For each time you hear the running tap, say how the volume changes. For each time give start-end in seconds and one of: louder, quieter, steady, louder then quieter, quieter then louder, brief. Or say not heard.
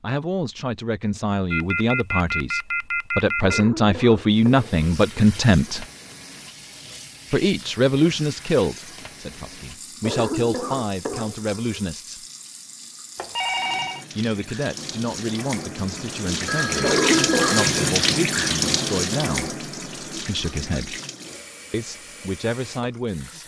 4.3-23.4 louder then quieter.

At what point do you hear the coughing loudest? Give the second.
17 s.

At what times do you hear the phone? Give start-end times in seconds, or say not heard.
1.5-3.6, 13.2-14.1, 16.4-17.9.